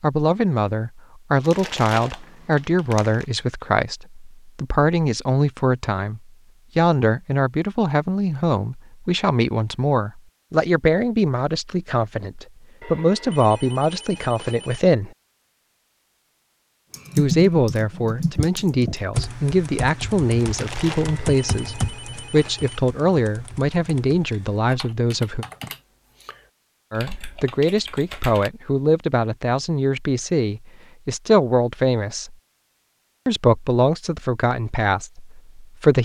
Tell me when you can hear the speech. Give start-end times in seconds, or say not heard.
0.0-15.1, 17.1-25.4, 26.9-32.4, 33.2-35.9.